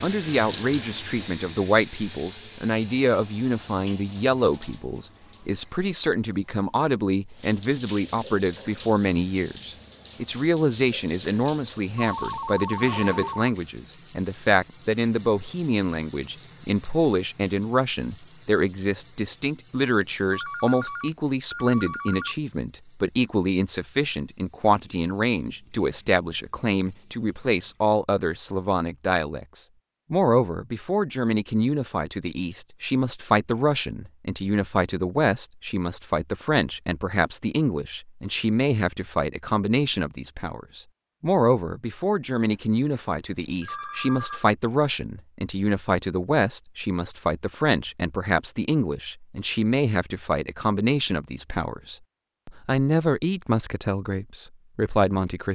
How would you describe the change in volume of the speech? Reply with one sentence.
The loudness of the speech stays about the same.